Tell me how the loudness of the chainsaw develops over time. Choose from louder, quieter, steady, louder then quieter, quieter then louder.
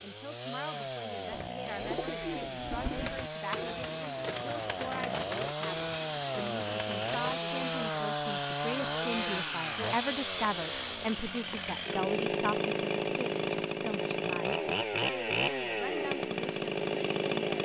louder.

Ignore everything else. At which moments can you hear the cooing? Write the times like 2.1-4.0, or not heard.
1.3-7.5.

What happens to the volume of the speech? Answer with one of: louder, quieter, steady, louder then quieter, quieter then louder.
louder then quieter.